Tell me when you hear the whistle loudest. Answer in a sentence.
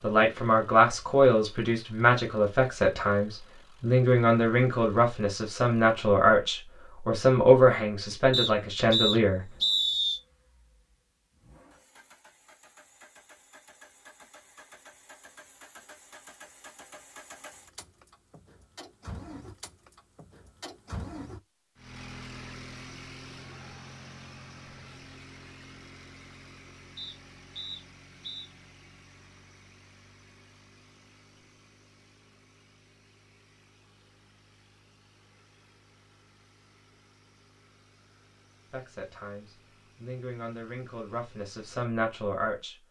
The volume of the whistle peaks at 10 seconds.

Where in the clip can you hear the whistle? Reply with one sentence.
You can hear the whistle from 8.3 to 10.2 s and from 26.9 to 28.5 s.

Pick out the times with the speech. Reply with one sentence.
You can hear the speech from 0.0 to 9.5 s and from 38.7 to 42.8 s.